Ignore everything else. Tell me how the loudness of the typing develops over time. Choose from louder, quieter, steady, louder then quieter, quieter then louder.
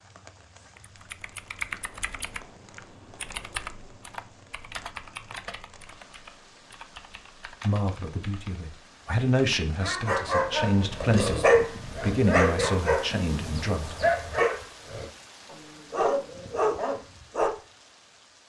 quieter.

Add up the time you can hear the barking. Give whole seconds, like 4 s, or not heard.
8 s.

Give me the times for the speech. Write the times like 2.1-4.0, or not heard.
7.6-13.9.